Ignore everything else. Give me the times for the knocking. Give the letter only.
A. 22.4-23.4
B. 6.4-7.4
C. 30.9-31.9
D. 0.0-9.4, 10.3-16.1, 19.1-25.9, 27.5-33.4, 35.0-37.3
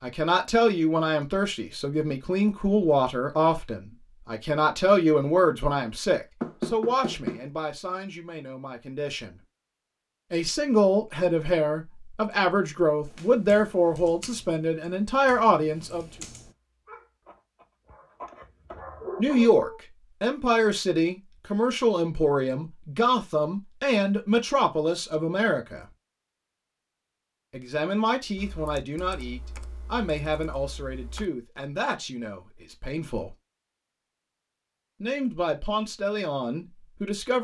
B.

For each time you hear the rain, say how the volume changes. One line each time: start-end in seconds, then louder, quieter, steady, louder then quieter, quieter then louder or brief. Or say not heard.
not heard.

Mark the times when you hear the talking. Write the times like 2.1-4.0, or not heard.
0.0-9.4, 10.3-16.1, 19.1-25.9, 27.5-33.4, 35.0-37.3.